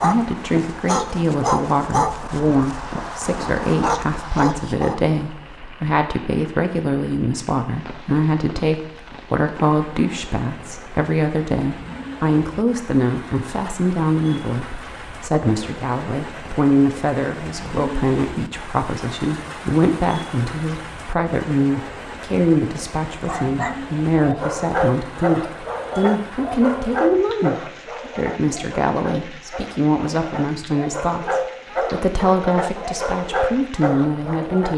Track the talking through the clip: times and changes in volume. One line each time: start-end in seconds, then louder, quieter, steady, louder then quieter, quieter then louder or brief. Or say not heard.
0.0-34.7 steady.